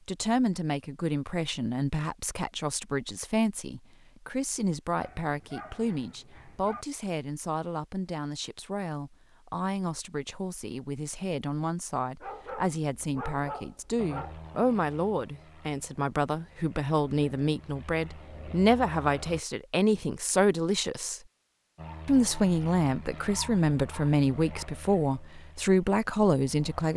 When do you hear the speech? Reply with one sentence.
You can hear the speech from 0.1 to 21.2 s and from 22.1 to 26.9 s.